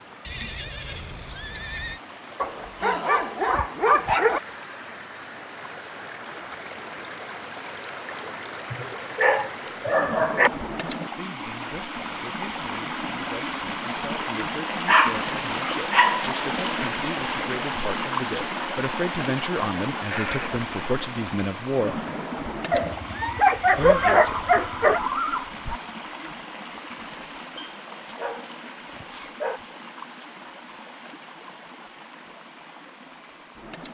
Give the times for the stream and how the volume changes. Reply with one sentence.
The stream can be heard from 0.0 to 33.8 s, getting louder then quieter.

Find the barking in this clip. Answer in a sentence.
The barking can be heard from 2.4 to 4.4 s, from 8.7 to 10.5 s, from 14.8 to 16.2 s, from 22.7 to 25.0 s and from 27.6 to 29.6 s.